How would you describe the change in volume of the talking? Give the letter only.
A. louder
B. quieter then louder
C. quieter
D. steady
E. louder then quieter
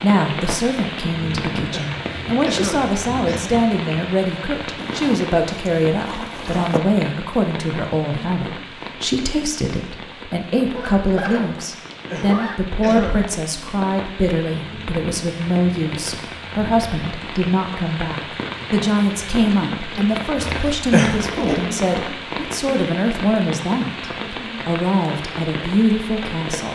D.